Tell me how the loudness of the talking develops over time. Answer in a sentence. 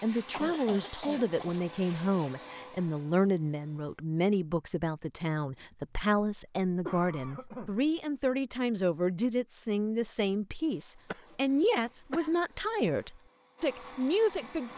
The volume of the talking stays about the same.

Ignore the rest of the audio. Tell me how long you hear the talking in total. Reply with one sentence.
You can hear the talking for 15 seconds altogether.